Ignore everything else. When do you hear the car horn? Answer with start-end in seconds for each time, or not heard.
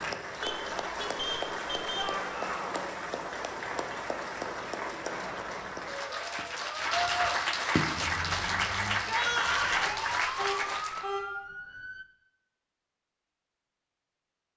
0.4-2.1, 9.8-11.2.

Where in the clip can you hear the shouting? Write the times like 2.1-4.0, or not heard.
1.9-2.8, 9.0-9.9.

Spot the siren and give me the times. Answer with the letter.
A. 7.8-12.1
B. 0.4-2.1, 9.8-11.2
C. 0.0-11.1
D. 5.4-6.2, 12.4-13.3
A.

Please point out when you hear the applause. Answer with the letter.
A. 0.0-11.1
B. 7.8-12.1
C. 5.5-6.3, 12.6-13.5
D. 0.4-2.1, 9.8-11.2
A.